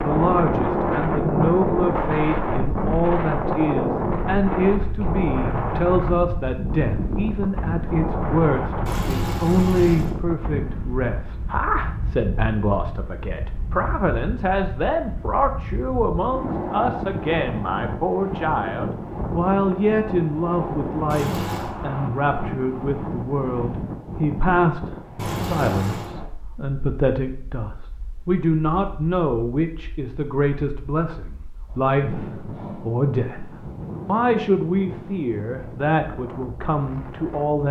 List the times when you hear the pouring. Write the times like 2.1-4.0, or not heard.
8.8-10.2, 21.1-21.7, 25.1-26.1.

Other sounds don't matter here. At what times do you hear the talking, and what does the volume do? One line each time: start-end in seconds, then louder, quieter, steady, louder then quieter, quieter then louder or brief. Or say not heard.
0.0-37.6 steady.